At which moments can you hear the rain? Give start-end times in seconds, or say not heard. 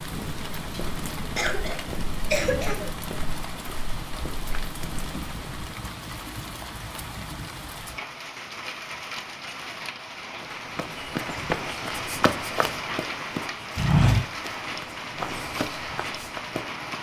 0.0-16.9.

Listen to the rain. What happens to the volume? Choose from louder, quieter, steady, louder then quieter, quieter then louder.
steady.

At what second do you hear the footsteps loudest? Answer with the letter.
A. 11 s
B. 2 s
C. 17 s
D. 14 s
D.